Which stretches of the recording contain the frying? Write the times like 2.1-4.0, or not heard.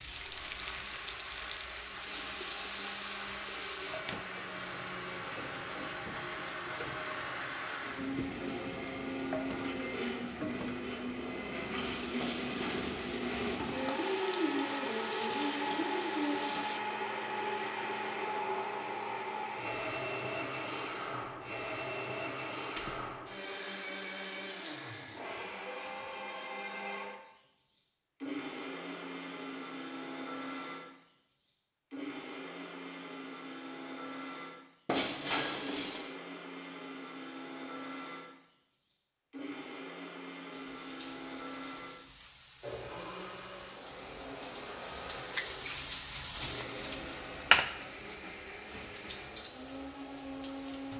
0.0-16.8, 40.5-50.9.